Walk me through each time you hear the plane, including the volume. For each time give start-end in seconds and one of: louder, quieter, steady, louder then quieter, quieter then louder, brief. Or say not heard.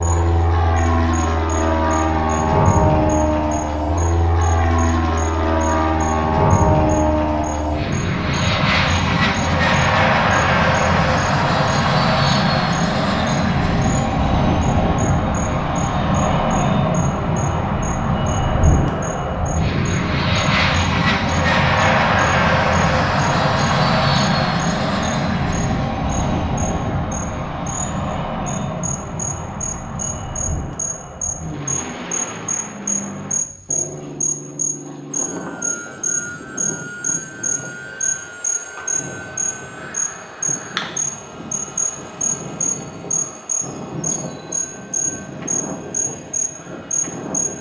0.0-47.5 quieter.